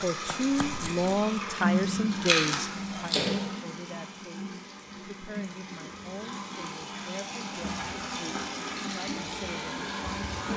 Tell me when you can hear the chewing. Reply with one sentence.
You can hear the chewing from 2.1 to 3.4 s.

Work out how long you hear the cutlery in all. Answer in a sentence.
You can't hear the cutlery here.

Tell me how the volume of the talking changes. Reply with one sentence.
The volume of the talking goes down.